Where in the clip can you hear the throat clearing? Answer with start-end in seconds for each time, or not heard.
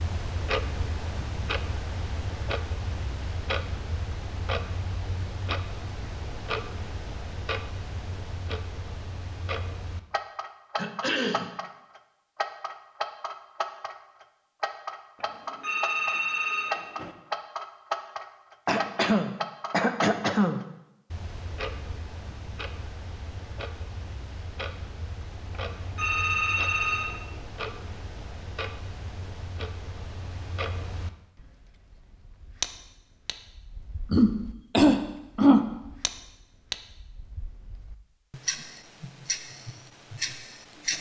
10.8-11.6, 18.6-20.6, 34.1-35.6.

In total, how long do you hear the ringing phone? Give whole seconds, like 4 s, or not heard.
4 s.